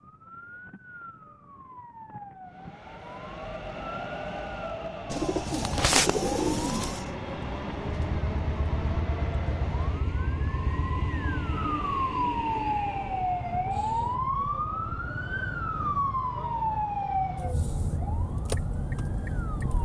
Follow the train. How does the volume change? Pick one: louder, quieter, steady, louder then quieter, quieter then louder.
steady.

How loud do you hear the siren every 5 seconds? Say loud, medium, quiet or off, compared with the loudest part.
quiet, medium, loud, loud.